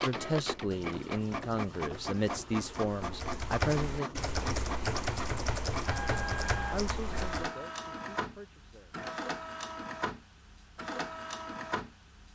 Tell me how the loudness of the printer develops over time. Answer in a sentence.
The volume of the printer stays about the same.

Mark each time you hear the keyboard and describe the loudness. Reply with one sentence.
You can hear the keyboard from 0.6 to 7.5 s, getting louder.